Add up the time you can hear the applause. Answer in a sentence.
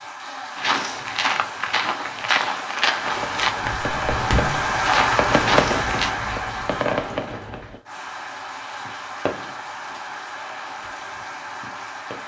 You can hear the applause for 12 seconds altogether.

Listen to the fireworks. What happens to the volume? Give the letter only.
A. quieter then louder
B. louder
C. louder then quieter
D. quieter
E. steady
C.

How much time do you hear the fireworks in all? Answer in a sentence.
You can hear the fireworks for 9 seconds altogether.